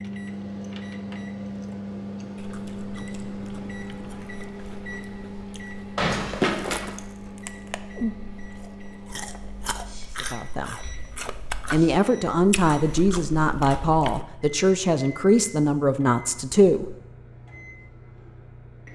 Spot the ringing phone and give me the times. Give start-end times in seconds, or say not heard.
6.0-6.9.